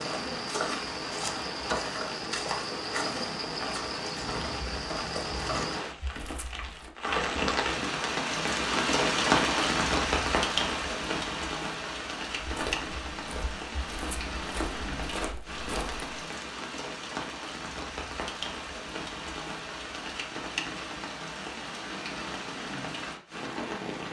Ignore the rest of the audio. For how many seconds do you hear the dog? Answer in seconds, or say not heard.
not heard.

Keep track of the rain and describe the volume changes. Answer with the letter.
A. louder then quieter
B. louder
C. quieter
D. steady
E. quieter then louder
A.